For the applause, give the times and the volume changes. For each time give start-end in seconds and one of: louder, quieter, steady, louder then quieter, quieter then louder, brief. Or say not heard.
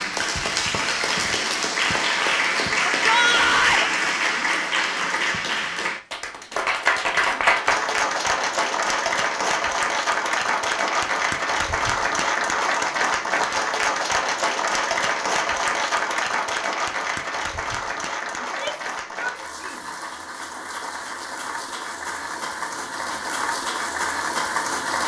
0.0-25.0 quieter.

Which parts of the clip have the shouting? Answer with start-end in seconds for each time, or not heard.
3.0-3.9, 18.4-19.8.